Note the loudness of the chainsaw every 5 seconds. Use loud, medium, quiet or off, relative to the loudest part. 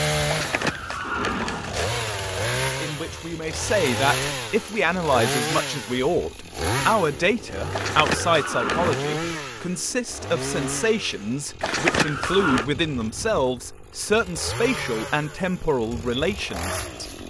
loud, loud, medium, medium.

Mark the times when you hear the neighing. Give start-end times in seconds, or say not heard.
0.2-1.9, 7.7-9.1, 11.6-12.7.